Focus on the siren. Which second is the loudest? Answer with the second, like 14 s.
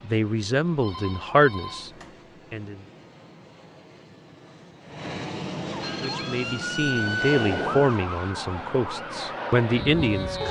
7 s.